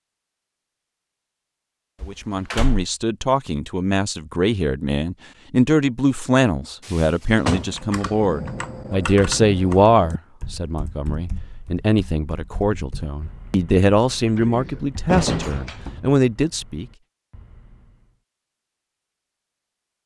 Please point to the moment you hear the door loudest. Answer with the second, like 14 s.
15 s.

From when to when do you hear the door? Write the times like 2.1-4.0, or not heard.
2.0-2.9, 6.8-7.8, 14.3-16.1.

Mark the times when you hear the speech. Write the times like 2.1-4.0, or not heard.
2.0-16.9.